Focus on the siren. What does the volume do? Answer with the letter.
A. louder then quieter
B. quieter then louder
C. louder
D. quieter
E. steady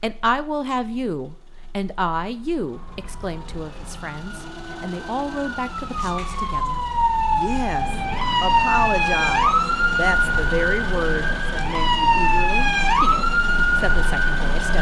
C.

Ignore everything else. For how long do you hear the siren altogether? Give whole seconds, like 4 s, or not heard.
12 s.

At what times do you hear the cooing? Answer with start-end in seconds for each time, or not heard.
not heard.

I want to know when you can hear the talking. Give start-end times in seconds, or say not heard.
0.0-14.7.